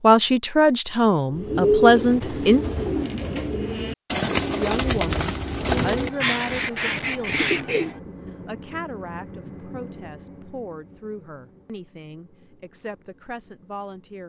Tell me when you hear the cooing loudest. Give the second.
2 s.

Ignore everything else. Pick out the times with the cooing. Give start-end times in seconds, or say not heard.
1.3-7.9.